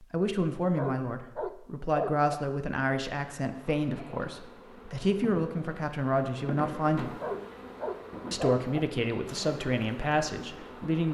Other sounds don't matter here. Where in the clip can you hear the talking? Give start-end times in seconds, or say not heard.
0.0-7.2, 8.3-11.0.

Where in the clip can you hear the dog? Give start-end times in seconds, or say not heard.
0.8-2.3, 7.2-8.8.